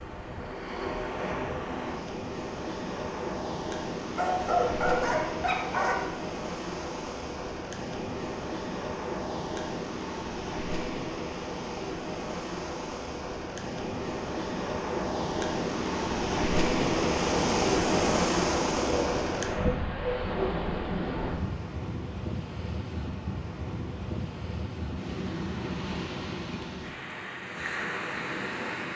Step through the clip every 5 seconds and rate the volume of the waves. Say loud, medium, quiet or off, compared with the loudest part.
medium, medium, medium, loud, medium, medium.